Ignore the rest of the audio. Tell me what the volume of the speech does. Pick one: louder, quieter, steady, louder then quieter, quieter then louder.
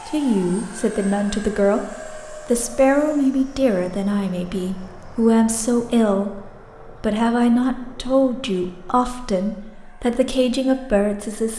steady.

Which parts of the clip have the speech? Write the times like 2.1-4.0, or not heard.
0.1-6.4, 7.0-11.5.